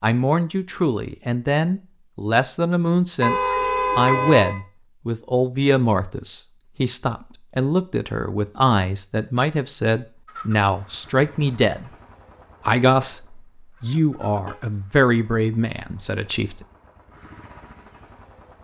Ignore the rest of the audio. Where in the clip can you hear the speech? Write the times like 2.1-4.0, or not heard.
0.0-11.9, 12.7-16.6.